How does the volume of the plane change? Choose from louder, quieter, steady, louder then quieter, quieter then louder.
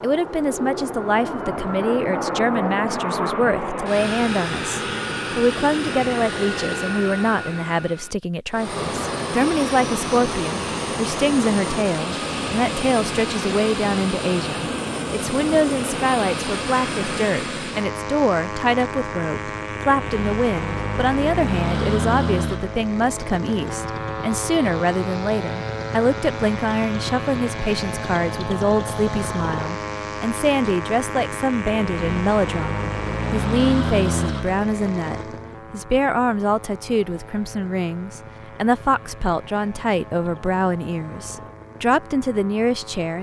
quieter.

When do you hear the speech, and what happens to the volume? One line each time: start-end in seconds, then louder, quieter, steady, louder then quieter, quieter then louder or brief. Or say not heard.
0.0-43.1 steady.